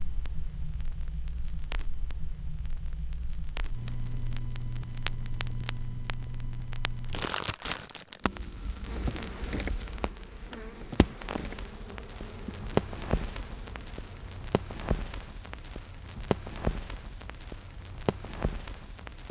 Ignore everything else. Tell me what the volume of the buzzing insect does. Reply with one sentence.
The volume of the buzzing insect goes down.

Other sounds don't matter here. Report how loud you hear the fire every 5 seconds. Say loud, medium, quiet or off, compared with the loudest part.
medium, loud, loud, loud.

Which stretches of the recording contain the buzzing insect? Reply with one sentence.
The buzzing insect can be heard from 8.8 to 14.5 s.